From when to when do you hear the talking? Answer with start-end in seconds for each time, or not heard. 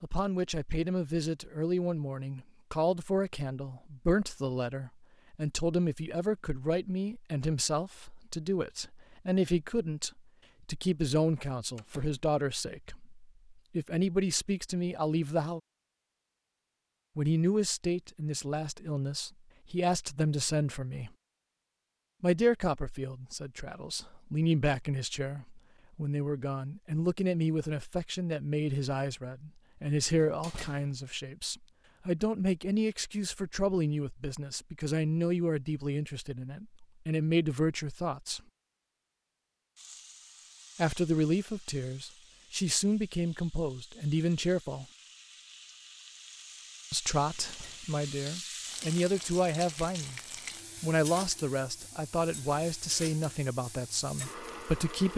0.0-15.6, 17.1-21.1, 22.2-38.4, 40.8-44.9, 46.9-50.2, 50.8-55.1.